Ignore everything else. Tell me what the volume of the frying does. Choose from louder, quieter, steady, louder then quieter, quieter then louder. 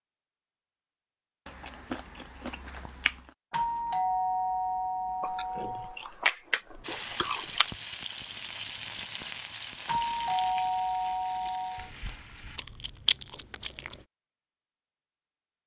quieter.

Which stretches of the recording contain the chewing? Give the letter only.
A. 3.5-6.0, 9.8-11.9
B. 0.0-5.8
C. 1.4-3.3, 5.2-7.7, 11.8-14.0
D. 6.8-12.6
C.